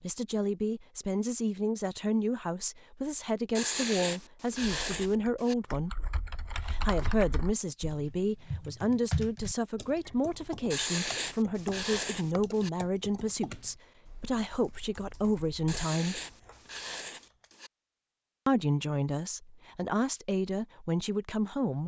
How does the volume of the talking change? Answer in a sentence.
The volume of the talking stays about the same.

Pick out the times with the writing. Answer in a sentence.
You can hear the writing from 3.5 to 5.5 s, from 10.7 to 12.7 s and from 15.7 to 17.7 s.